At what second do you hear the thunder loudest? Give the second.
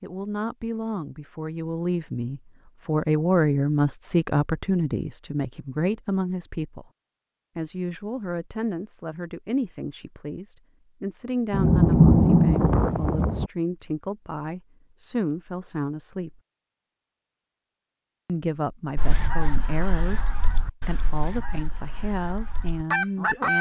12 s.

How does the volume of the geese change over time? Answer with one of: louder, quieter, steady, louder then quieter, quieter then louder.
quieter then louder.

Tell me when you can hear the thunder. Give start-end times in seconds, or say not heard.
11.5-13.5.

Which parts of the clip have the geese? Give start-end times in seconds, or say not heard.
18.9-23.5.